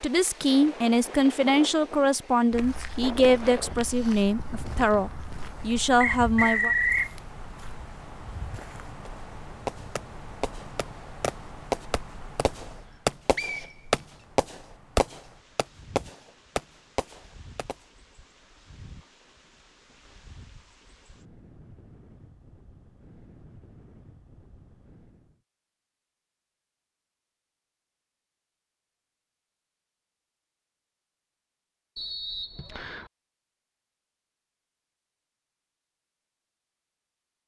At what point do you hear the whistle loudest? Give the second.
7 s.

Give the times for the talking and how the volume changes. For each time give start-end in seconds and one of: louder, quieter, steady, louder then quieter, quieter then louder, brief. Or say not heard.
0.0-6.8 steady.